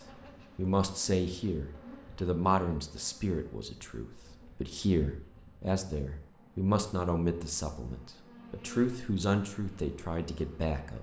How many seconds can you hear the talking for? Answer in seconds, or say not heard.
10 s.